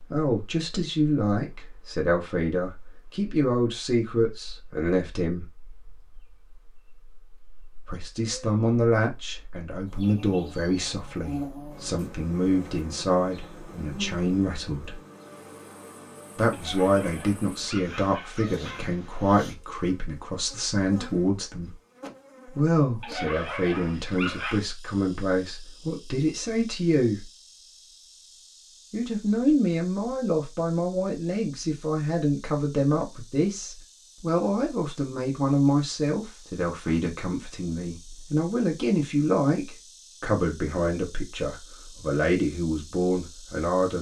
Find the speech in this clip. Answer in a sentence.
You can hear the speech from 0.0 to 5.5 s, from 7.8 to 15.0 s, from 16.4 to 21.8 s, from 22.4 to 27.2 s and from 28.9 to 43.9 s.